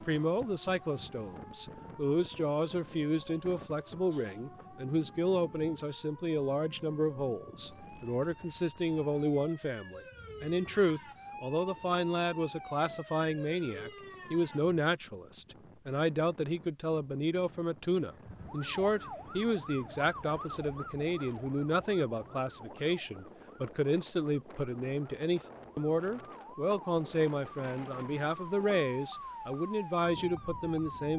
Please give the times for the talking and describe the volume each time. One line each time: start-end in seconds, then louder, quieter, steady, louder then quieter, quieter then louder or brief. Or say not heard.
0.0-31.1 steady.